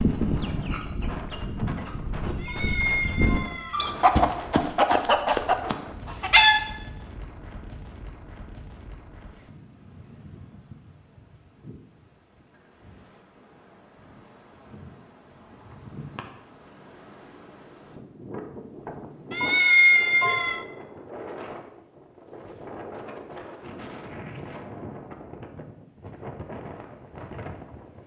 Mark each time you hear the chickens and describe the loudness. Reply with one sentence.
The chickens can be heard from 0.0 to 6.6 s, getting louder.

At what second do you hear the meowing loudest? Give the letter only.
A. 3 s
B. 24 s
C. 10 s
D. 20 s
D.